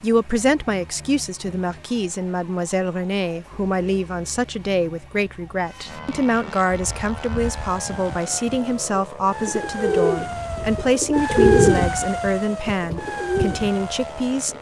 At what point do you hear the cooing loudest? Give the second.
12 s.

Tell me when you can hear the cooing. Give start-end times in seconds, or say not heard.
6.7-14.5.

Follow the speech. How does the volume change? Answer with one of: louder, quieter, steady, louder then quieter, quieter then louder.
steady.